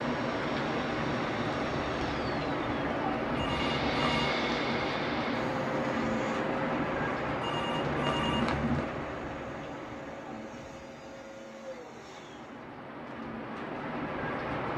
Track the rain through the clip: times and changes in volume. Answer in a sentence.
The rain can be heard from 0.0 to 14.7 s, getting quieter.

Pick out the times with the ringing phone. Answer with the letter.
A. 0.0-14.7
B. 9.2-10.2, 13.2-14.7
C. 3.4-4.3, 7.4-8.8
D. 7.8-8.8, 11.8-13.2
C.